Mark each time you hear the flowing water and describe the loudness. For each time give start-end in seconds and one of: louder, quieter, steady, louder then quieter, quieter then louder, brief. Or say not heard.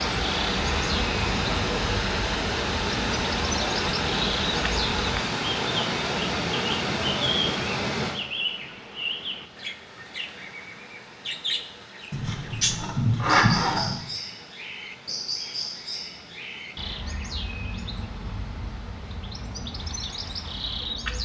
0.0-21.1 quieter.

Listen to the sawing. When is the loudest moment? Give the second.
13 s.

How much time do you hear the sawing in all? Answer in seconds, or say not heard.
2 s.